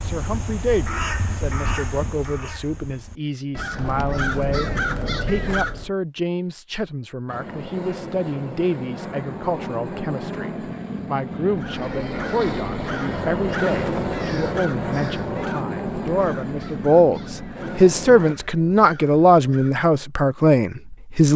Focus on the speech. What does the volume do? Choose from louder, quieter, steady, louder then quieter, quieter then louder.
louder.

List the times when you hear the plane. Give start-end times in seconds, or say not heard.
7.2-18.4.